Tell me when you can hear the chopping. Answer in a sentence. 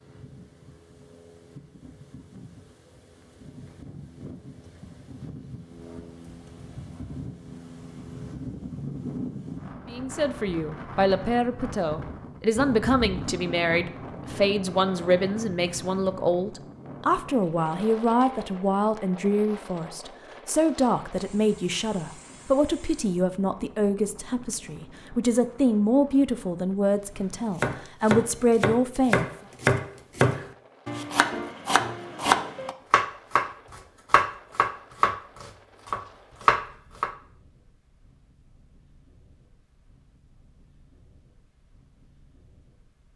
You can hear the chopping from 27.6 to 37.1 s.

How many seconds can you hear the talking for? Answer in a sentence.
You can hear the talking for 19 seconds altogether.